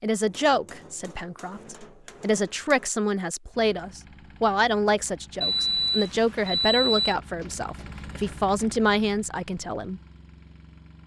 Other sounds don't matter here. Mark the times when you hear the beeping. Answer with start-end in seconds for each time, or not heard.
5.4-7.2.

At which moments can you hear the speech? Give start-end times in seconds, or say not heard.
0.0-10.0.